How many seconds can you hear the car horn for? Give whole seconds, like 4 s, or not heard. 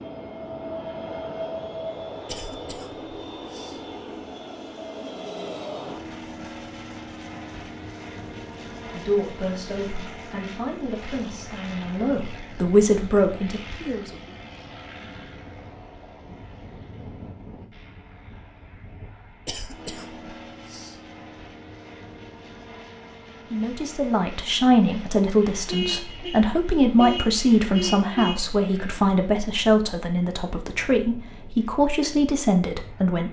3 s.